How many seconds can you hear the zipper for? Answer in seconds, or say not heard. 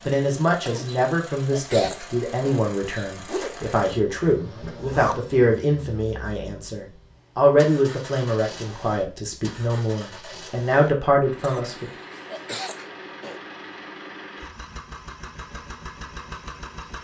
2 s.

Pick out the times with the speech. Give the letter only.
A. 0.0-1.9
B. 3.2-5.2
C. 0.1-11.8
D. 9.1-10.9
C.